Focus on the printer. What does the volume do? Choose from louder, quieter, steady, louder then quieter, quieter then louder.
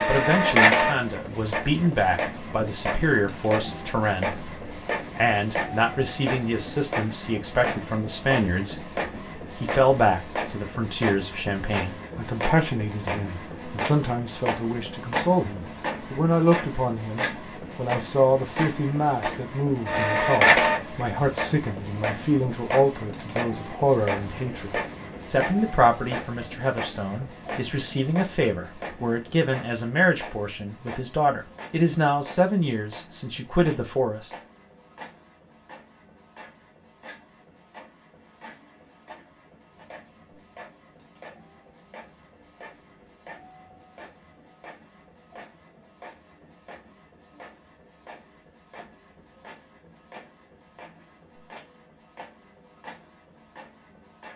quieter.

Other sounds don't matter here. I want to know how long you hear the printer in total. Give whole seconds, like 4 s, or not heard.
54 s.